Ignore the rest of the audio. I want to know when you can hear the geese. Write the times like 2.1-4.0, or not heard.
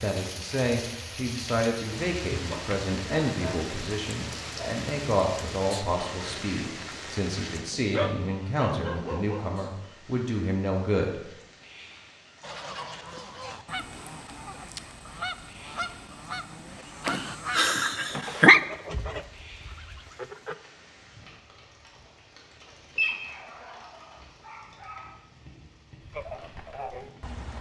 12.4-20.6, 26.0-27.5.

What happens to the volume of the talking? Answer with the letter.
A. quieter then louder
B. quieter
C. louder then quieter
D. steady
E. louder
D.